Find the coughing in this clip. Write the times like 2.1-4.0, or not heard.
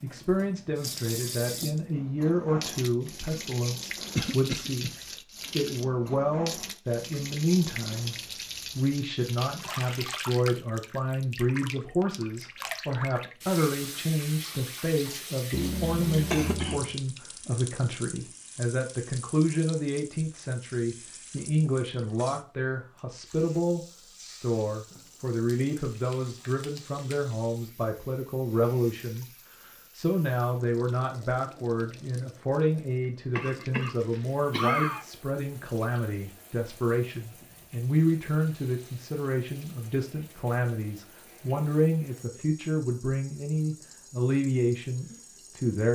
4.2-4.9, 15.5-16.9, 33.4-35.0.